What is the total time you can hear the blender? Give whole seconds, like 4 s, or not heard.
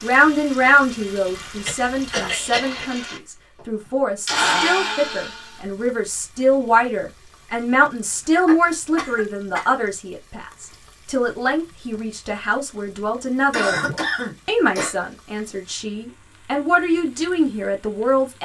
6 s.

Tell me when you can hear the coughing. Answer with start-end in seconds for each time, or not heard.
1.3-2.9, 8.3-9.8, 13.5-14.9.